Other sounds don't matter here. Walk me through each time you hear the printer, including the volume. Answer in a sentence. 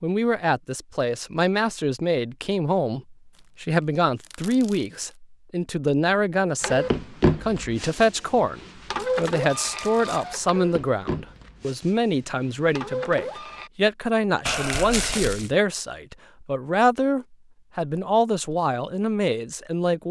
You can hear the printer from 6.6 to 13.7 s, getting quieter.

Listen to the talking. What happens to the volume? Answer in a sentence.
The loudness of the talking stays about the same.